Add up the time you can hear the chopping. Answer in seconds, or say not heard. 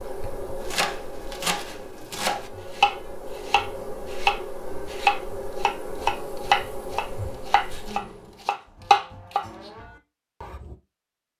10 s.